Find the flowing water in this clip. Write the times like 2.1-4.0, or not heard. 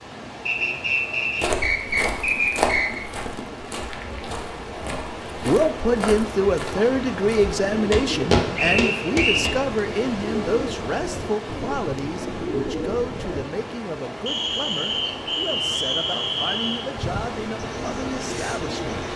0.0-19.1.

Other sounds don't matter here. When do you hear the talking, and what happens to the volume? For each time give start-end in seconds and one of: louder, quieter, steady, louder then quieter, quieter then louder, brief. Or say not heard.
5.4-19.0 quieter.